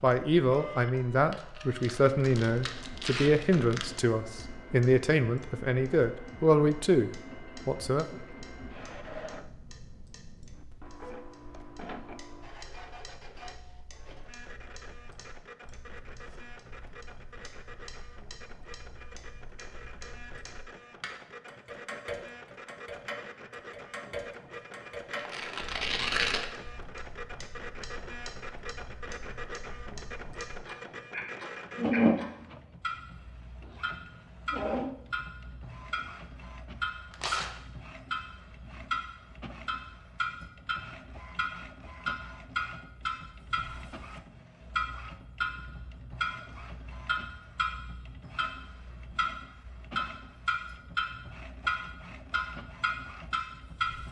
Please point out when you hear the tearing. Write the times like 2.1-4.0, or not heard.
1.3-3.9, 25.1-26.5, 37.1-37.5.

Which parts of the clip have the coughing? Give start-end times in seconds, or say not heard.
not heard.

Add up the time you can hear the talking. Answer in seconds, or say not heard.
8 s.